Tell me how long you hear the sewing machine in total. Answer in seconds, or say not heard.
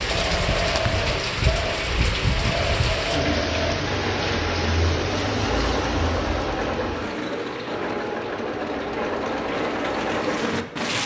11 s.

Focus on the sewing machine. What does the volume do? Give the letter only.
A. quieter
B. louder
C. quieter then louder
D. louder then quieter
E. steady
E.